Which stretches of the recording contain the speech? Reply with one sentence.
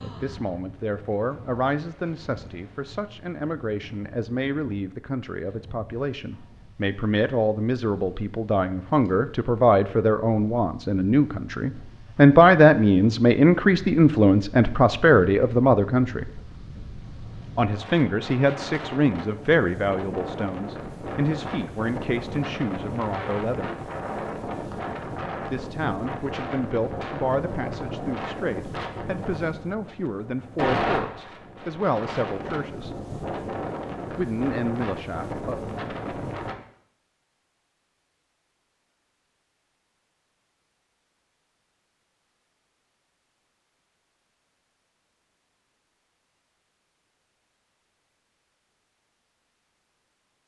The speech can be heard from 0.0 to 16.2 s, from 17.6 to 23.7 s, from 25.4 to 32.9 s and from 34.1 to 35.7 s.